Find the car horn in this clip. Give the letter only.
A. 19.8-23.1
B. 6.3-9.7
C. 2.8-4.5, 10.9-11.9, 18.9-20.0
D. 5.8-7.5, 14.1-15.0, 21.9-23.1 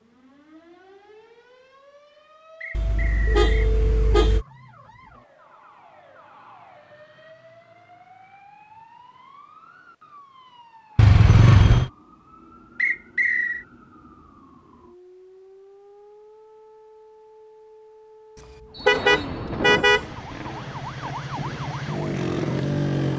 C.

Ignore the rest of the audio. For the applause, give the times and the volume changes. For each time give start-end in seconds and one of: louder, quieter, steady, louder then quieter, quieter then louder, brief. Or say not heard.
not heard.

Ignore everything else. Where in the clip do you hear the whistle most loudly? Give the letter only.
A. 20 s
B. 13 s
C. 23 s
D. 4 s
B.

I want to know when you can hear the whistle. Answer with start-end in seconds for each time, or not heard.
2.6-3.7, 12.8-13.7, 18.7-19.7.